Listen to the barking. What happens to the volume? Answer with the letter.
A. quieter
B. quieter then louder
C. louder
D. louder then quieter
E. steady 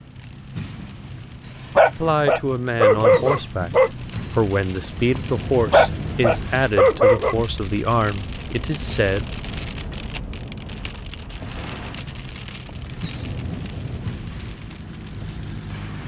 B.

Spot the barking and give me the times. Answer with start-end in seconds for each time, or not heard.
1.6-7.3.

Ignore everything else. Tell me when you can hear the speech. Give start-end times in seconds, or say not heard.
1.9-9.3.